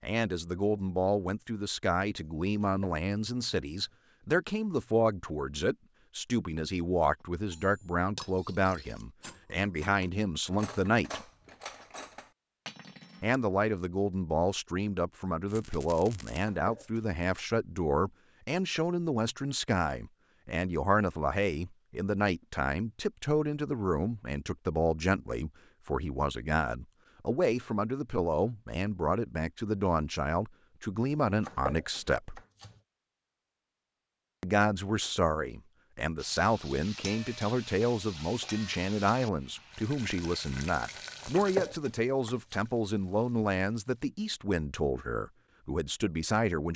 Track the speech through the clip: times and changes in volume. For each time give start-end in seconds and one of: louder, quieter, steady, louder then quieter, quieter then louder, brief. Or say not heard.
0.0-11.2 steady
13.2-32.4 steady
34.4-46.7 steady.